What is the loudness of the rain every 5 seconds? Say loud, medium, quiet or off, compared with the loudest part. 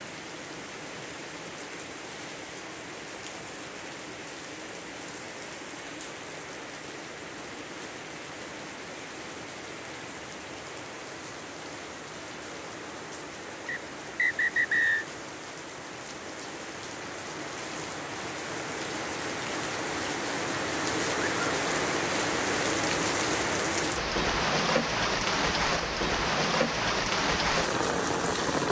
quiet, quiet, quiet, medium, loud, loud.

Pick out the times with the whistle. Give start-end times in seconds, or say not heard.
13.7-15.1.